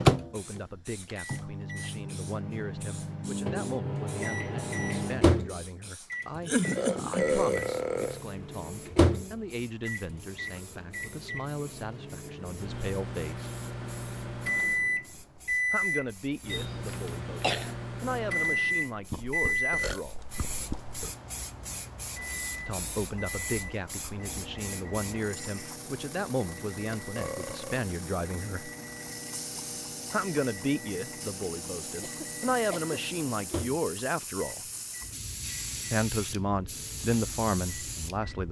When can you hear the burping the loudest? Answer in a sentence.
The loudest moment of the burping is at 7 seconds.